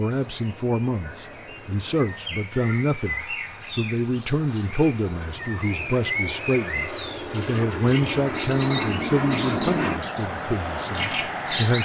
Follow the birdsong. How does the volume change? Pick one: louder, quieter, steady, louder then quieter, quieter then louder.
louder.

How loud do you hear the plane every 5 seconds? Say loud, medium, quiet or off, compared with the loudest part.
quiet, loud, loud.